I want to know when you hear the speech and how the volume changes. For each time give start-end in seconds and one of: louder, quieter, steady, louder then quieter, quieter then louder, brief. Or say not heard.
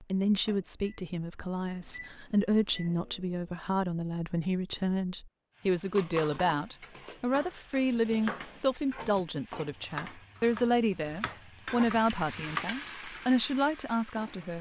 0.0-14.5 steady.